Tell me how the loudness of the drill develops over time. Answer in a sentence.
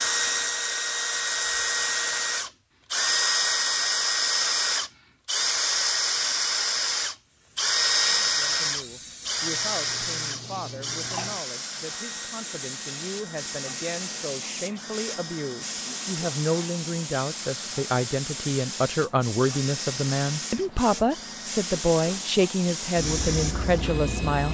The loudness of the drill goes down.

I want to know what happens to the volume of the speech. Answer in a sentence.
The loudness of the speech goes up.